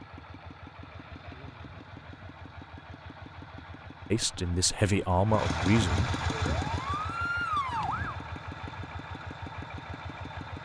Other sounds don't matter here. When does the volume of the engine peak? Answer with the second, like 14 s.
6 s.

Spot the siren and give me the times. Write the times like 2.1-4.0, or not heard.
6.5-8.2.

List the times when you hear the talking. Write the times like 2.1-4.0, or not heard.
4.1-6.1.